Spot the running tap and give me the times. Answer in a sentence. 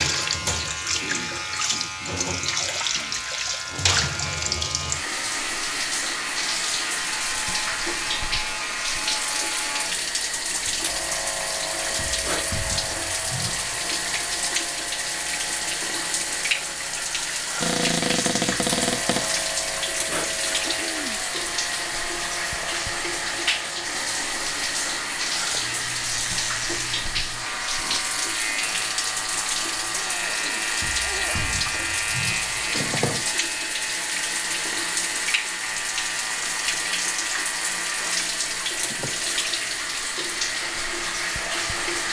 The running tap can be heard from 0.0 to 42.0 s.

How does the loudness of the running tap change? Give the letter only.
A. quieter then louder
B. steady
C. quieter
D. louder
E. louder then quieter
B.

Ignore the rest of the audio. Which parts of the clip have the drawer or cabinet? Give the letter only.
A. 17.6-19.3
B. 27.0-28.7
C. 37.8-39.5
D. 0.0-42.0
A.